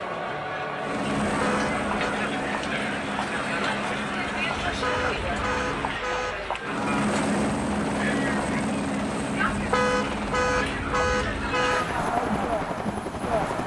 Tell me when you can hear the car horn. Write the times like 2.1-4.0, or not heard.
1.2-2.1, 4.7-6.5, 9.6-11.8.